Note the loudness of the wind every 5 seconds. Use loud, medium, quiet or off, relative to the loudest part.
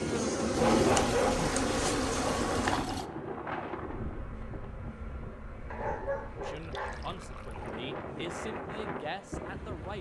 loud, medium.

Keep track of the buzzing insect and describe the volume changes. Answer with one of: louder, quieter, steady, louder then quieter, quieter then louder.
quieter.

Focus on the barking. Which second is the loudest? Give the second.
1 s.